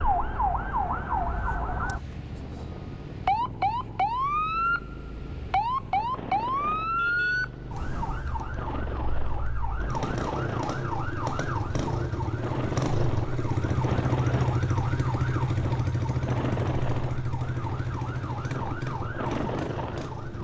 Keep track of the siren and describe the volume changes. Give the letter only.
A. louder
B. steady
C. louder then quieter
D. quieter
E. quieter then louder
D.